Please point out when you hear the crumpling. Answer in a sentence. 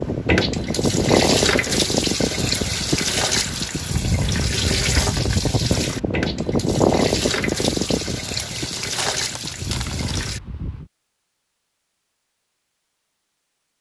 You can hear the crumpling from 8.2 to 10.2 s.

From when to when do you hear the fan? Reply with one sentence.
You can hear the fan from 0.0 to 10.9 s.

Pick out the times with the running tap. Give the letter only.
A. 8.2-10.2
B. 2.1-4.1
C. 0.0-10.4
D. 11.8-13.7
C.